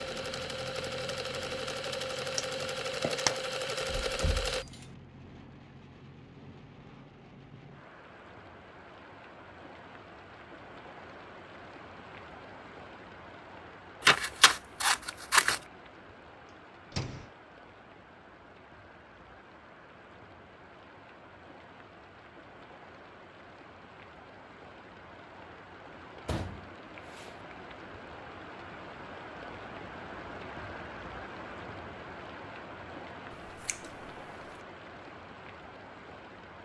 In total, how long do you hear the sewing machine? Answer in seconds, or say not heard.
5 s.